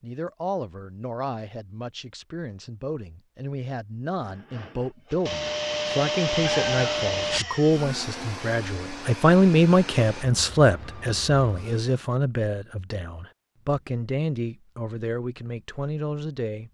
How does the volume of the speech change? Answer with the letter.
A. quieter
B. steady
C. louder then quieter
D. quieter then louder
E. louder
C.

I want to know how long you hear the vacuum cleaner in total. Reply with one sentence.
You can hear the vacuum cleaner for 8 seconds altogether.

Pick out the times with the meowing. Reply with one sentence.
The meowing can be heard from 6.4 to 7.5 s.